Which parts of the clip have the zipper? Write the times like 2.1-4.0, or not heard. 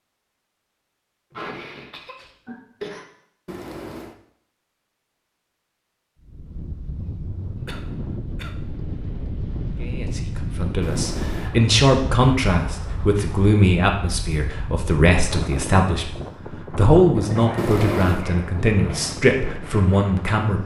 3.5-4.2, 10.8-11.5, 17.6-18.2.